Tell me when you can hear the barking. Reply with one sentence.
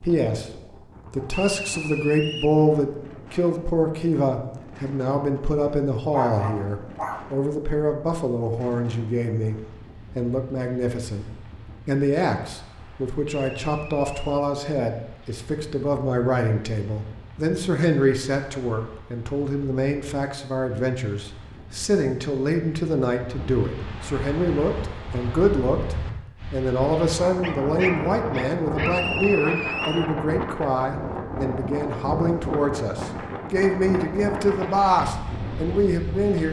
The barking can be heard from 6.1 to 7.3 s and from 27.4 to 29.0 s.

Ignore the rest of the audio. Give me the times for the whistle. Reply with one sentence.
You can hear the whistle from 1.3 to 2.5 s, from 13.2 to 14.4 s and from 28.9 to 30.1 s.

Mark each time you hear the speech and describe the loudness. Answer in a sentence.
You can hear the speech from 0.0 to 36.4 s, at a steady volume.